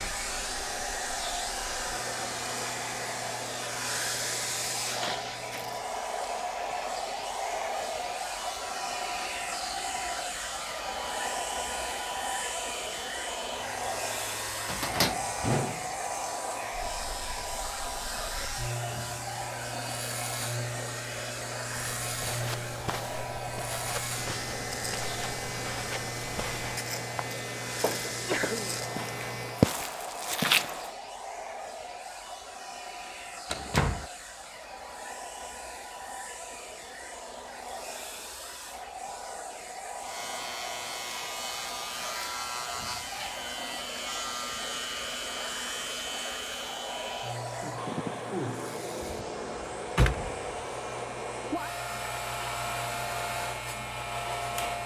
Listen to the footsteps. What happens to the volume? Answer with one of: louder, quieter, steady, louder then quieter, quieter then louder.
louder.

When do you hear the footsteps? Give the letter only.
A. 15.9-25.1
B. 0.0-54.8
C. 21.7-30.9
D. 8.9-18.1
C.